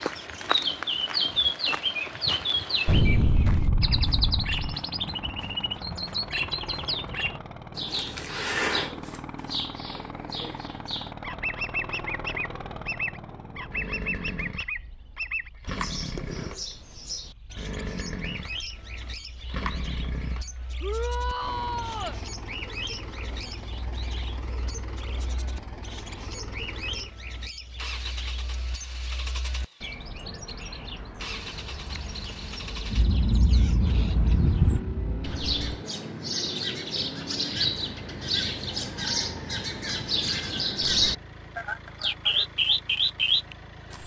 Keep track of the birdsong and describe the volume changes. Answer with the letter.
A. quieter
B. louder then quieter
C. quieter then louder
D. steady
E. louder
C.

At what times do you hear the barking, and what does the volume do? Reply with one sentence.
The barking can't be heard in this clip.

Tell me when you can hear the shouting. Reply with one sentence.
You can hear the shouting from 20.8 to 22.2 s.